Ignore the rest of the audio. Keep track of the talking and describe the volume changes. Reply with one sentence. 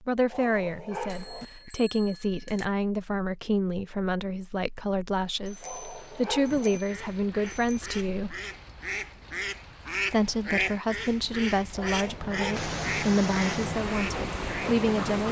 The loudness of the talking stays about the same.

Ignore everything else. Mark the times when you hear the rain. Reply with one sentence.
The rain can be heard from 5.2 to 15.2 s.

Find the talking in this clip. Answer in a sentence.
You can hear the talking from 0.1 to 8.3 s and from 10.1 to 15.2 s.